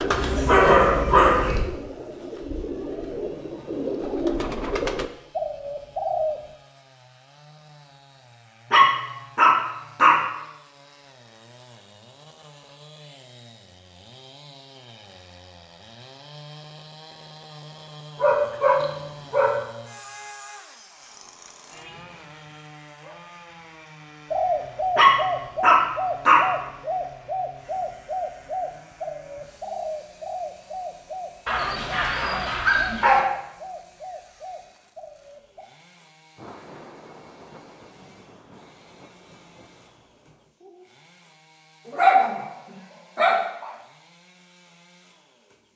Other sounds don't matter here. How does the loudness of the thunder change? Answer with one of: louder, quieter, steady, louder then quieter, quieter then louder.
quieter.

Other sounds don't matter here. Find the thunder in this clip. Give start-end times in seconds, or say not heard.
36.4-40.5.